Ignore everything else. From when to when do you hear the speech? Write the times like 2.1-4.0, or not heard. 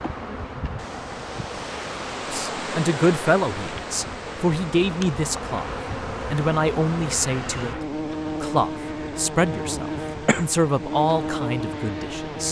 2.3-7.8, 8.4-12.4.